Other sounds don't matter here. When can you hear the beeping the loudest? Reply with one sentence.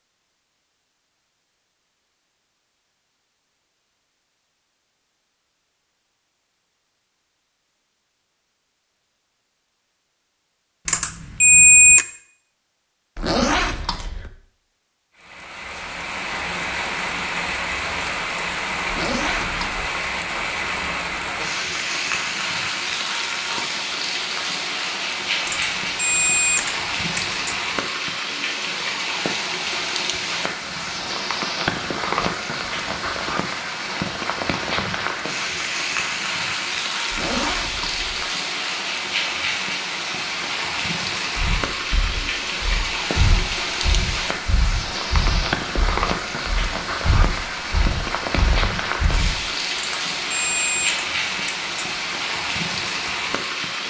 The loudest moment of the beeping is at 12 seconds.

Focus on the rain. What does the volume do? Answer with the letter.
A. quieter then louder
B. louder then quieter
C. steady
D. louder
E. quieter
C.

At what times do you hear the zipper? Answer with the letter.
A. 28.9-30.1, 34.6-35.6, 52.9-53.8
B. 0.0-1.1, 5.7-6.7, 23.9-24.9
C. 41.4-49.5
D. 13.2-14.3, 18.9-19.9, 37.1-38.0
D.